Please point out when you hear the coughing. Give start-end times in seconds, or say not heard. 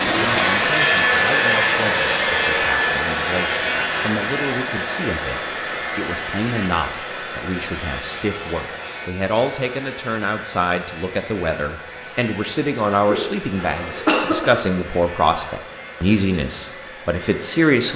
13.1-14.6.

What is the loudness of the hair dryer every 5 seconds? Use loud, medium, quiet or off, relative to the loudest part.
loud, medium, quiet, quiet.